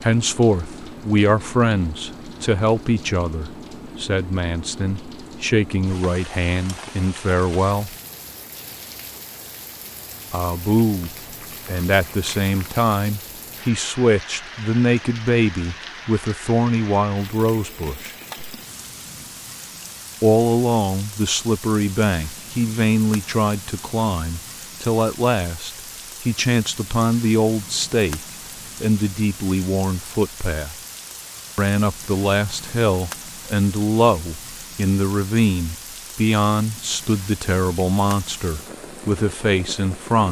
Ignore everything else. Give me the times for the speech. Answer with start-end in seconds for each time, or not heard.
0.0-8.0, 10.3-18.1, 20.2-28.2, 28.8-30.8, 31.6-40.2.